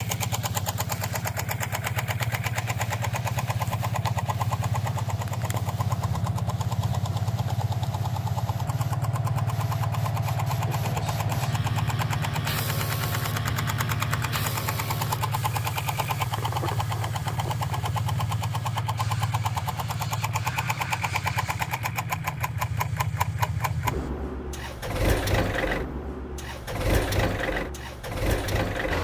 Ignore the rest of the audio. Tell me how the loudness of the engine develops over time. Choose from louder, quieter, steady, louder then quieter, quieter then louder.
steady.